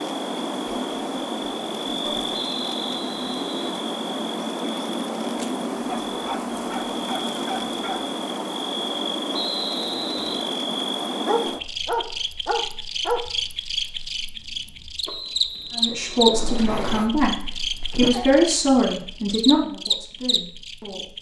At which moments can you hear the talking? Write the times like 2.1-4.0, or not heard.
15.8-21.1.